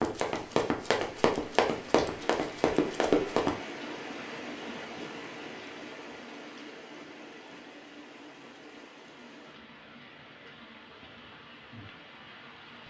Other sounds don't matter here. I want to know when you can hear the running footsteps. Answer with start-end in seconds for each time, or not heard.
0.0-3.5.